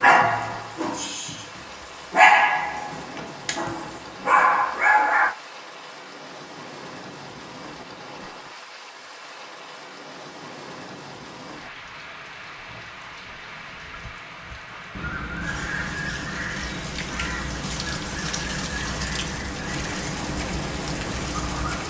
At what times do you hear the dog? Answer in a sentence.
You can hear the dog from 0.0 to 5.3 s.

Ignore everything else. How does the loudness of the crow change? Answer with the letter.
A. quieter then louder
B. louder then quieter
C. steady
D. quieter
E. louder
C.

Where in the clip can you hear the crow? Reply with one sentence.
The crow can be heard from 14.4 to 21.8 s.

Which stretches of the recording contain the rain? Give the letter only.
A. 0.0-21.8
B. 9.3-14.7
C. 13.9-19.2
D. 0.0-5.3
A.